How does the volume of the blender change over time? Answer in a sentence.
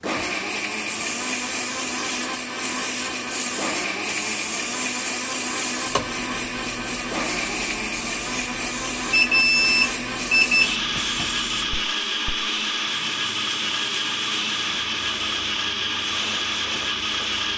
The volume of the blender stays about the same.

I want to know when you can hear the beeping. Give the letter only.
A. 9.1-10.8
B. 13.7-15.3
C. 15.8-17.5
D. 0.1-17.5
A.